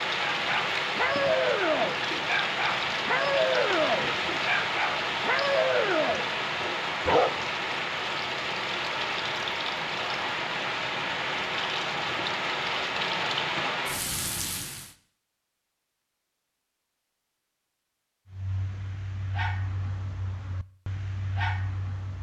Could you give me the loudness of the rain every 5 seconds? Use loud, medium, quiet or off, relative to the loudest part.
loud, loud, loud, off, off.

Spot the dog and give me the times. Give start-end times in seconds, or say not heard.
0.3-7.5, 18.3-22.1.